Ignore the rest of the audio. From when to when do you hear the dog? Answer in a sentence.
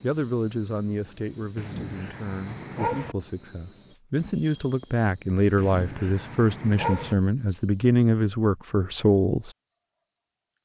The dog can be heard from 1.6 to 3.1 s and from 5.5 to 7.2 s.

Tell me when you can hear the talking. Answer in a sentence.
You can hear the talking from 0.0 to 9.6 s.